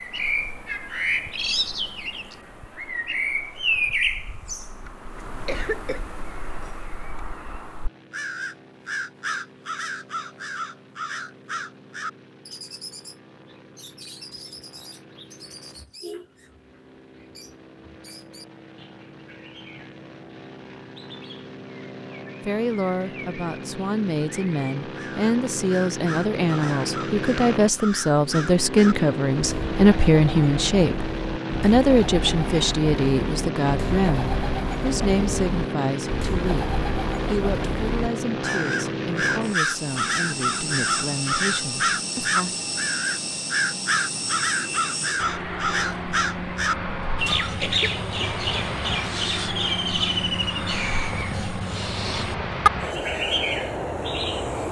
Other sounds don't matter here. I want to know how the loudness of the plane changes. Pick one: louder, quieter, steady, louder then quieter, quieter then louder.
louder.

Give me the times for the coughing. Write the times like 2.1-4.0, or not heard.
5.2-6.0, 47.5-48.0.